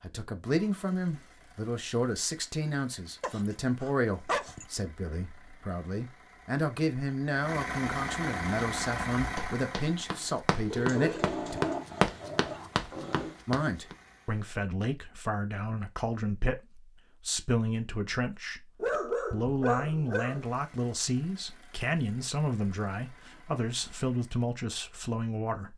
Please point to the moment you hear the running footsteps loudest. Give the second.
12 s.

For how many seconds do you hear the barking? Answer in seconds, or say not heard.
6 s.